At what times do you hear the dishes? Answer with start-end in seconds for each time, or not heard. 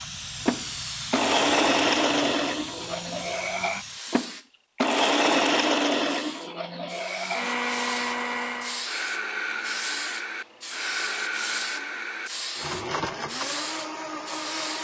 not heard.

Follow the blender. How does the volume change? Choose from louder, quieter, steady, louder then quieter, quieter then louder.
quieter.